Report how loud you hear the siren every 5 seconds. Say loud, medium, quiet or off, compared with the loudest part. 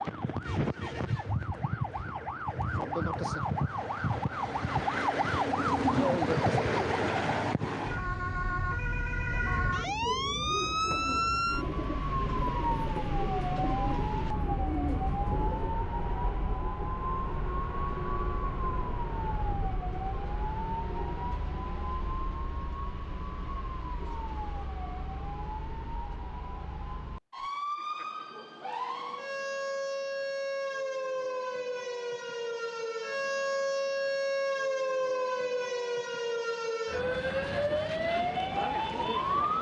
loud, loud, loud, medium, medium, medium, loud, loud.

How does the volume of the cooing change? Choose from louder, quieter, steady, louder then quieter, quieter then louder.
steady.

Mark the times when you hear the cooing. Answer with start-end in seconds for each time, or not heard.
9.2-15.8.